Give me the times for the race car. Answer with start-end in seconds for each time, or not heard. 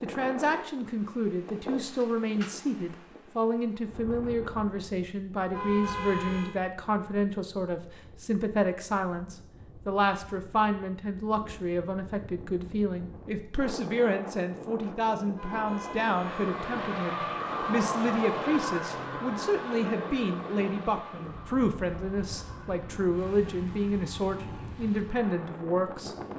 16.1-26.3.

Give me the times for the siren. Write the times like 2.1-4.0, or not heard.
not heard.